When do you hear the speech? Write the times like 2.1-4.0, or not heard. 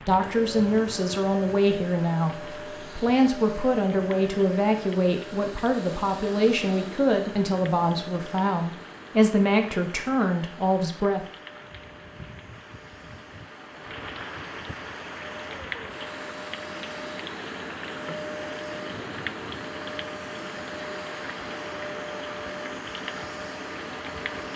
0.0-11.2.